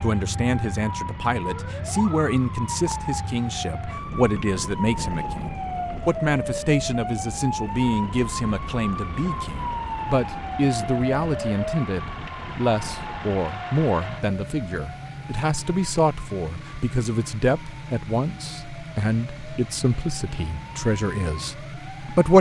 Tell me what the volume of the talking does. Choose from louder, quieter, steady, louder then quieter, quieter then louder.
steady.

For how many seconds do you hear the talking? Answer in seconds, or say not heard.
22 s.